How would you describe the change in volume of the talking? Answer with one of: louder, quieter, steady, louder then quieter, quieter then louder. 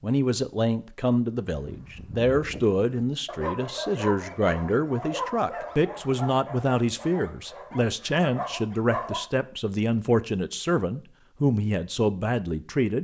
steady.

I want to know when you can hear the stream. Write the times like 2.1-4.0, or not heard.
not heard.